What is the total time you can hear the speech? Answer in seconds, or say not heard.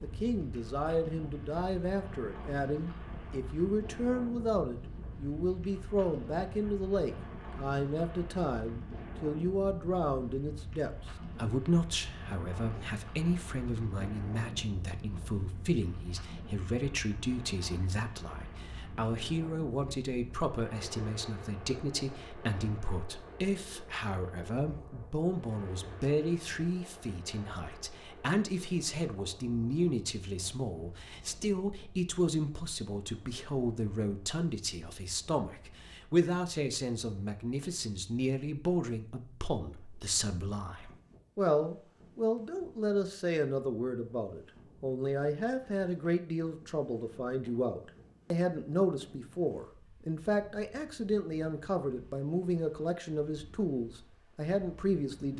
55 s.